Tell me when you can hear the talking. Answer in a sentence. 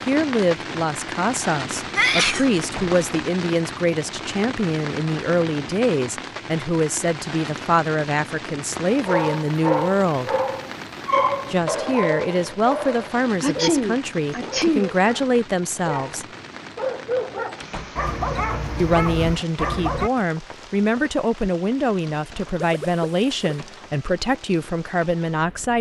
You can hear the talking from 0.1 to 10.3 s, from 11.5 to 16.2 s and from 18.8 to 25.7 s.